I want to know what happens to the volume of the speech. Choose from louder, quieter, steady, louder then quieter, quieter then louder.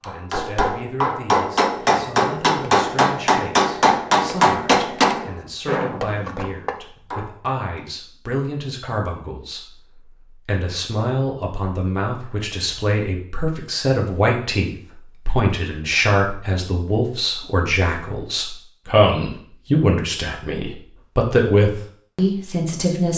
louder.